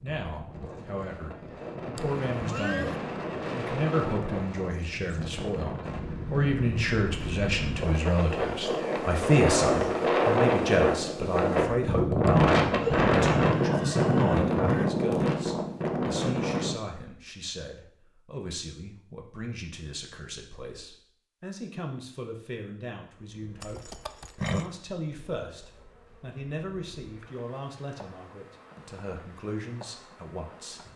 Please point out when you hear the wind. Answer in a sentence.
You can hear the wind from 0.0 to 16.8 s.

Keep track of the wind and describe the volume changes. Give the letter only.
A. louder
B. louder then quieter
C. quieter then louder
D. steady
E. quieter
A.